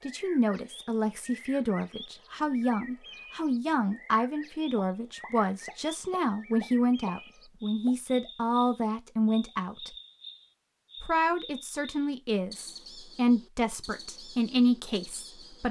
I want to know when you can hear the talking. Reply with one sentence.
The talking can be heard from 0.0 to 9.9 s and from 11.0 to 15.6 s.